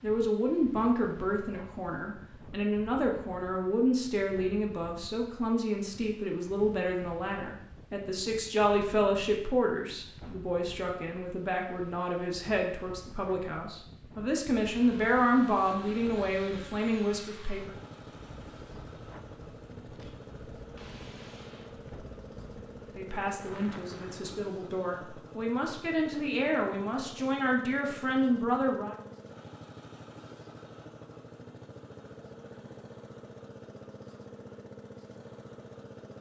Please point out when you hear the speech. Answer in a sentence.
You can hear the speech from 0.0 to 17.8 s and from 22.9 to 28.9 s.